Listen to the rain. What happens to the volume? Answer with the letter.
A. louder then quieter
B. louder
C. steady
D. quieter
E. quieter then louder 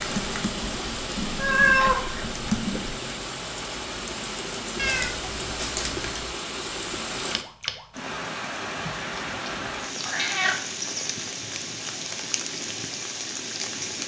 C.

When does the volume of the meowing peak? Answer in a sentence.
The volume of the meowing peaks at 2 seconds.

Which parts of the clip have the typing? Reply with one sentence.
You can hear the typing from 0.0 to 3.0 s.